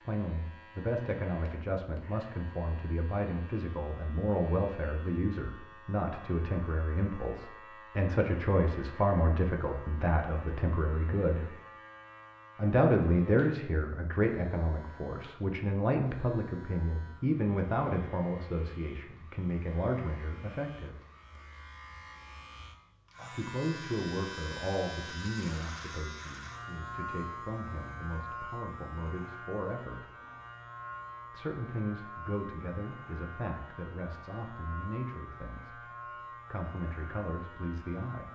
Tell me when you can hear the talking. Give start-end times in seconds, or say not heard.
0.1-11.4, 12.6-20.9, 23.3-30.1, 31.3-38.3.